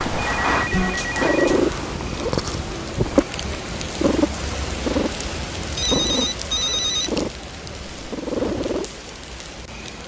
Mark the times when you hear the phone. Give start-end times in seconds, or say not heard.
0.1-1.6, 5.8-7.2.